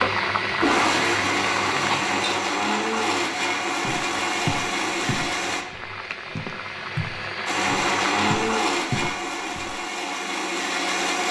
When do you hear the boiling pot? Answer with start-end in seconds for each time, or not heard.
0.0-8.3.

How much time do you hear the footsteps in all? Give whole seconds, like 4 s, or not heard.
6 s.